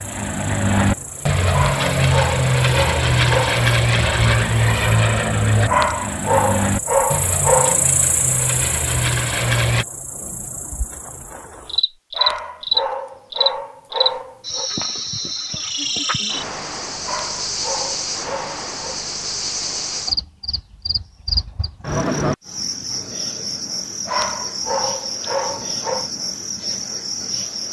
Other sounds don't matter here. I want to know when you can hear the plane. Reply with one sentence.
The plane can be heard from 0.0 to 9.8 s.